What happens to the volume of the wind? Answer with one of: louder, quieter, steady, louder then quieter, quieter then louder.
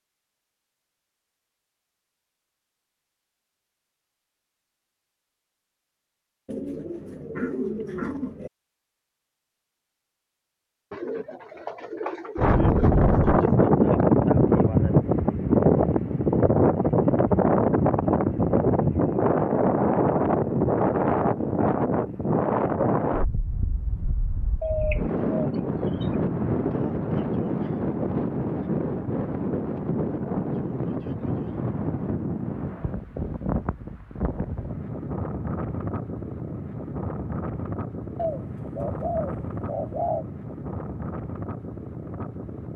quieter.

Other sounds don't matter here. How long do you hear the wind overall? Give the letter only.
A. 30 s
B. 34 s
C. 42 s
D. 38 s
A.